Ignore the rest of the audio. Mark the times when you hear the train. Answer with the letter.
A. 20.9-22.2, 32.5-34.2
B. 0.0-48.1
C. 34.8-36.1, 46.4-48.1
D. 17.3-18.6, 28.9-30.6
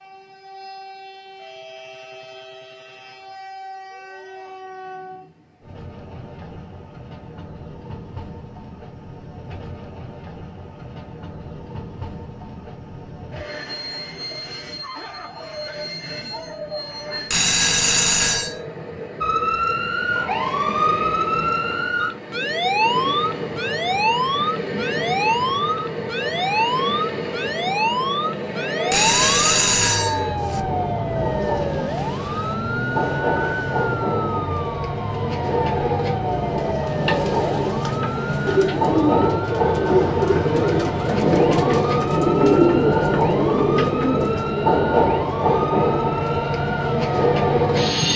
B.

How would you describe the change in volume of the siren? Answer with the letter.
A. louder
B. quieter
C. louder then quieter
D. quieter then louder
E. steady
B.